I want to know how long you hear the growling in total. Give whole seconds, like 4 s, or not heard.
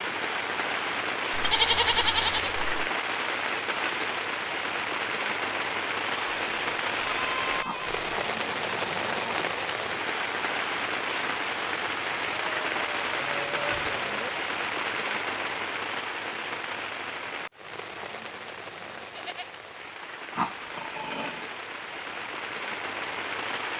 3 s.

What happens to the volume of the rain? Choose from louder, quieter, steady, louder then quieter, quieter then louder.
quieter.